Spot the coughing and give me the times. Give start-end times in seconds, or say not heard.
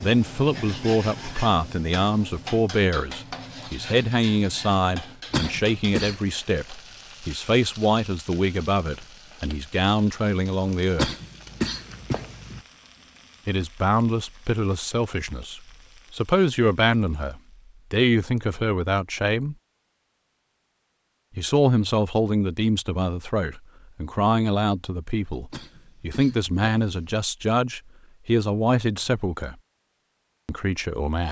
5.3-6.2, 10.9-12.6, 25.5-27.1.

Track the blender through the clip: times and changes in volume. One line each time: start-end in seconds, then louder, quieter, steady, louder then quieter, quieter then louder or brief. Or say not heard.
not heard.